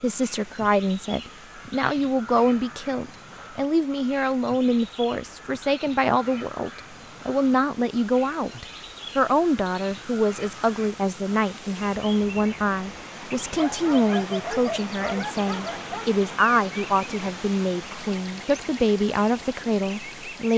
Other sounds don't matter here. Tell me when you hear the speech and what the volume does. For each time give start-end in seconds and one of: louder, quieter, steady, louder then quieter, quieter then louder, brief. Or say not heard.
0.0-20.5 steady.